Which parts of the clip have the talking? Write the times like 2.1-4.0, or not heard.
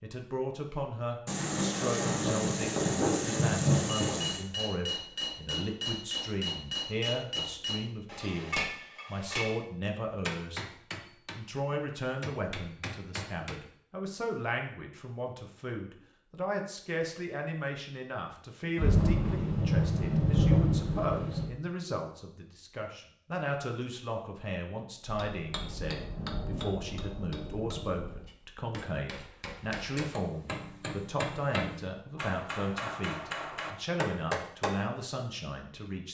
0.0-10.7, 11.3-36.0.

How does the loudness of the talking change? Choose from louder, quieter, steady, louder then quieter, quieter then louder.
steady.